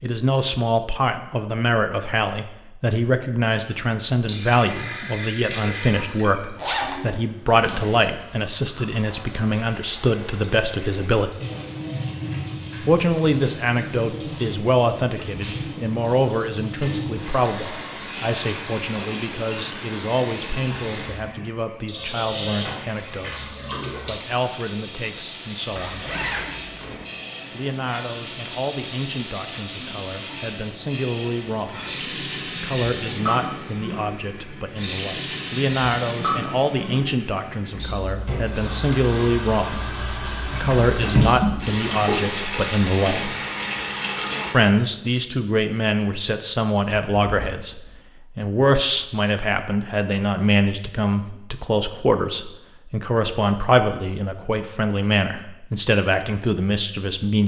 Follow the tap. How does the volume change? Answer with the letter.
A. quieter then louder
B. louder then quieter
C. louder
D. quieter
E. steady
C.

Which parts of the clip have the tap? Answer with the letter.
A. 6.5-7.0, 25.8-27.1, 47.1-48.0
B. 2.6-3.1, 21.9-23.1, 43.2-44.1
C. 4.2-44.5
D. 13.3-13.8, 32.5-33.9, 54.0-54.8
C.